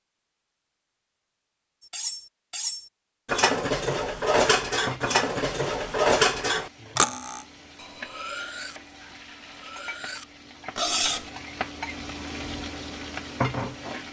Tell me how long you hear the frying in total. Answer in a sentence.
The frying can be heard for 9 seconds in total.